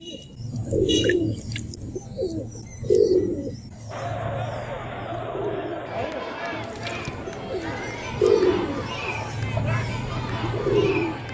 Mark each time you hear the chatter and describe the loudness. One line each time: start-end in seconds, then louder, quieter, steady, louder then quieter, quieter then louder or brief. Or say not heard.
3.9-11.2 steady.